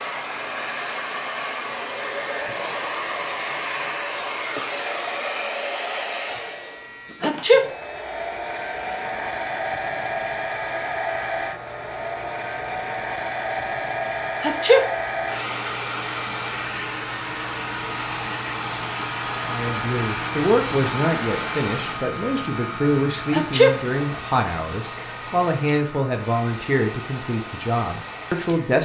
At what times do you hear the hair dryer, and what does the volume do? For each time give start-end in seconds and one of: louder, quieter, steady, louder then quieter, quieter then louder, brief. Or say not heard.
0.0-28.8 quieter.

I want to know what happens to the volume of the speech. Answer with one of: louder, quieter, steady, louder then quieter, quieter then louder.
steady.